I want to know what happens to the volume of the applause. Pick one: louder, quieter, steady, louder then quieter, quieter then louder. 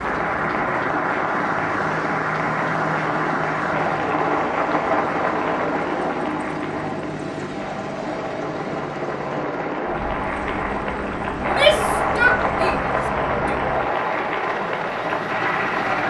quieter then louder.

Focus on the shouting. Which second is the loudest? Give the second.
12 s.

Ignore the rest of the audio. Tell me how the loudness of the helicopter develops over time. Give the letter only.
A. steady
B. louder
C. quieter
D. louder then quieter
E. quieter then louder
A.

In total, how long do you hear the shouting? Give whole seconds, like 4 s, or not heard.
2 s.